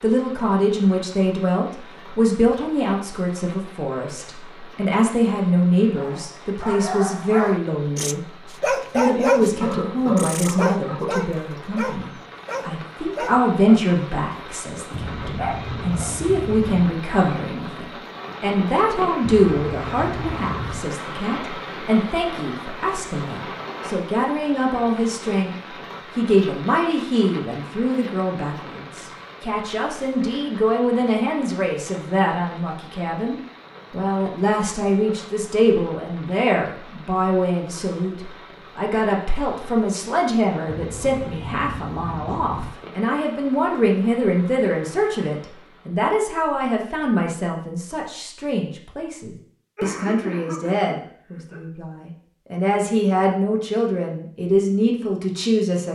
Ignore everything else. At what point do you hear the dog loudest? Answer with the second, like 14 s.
9 s.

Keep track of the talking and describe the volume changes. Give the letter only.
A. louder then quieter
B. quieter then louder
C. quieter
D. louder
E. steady
E.